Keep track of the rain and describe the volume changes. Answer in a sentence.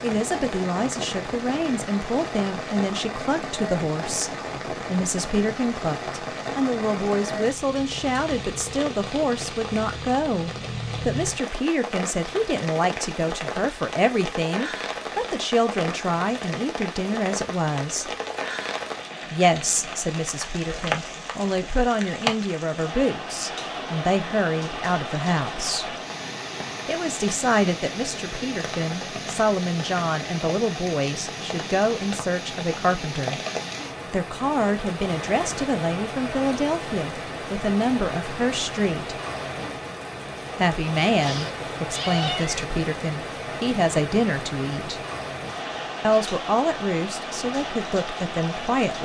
The volume of the rain stays about the same.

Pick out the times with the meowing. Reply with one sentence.
You can hear the meowing from 41.2 to 42.7 s.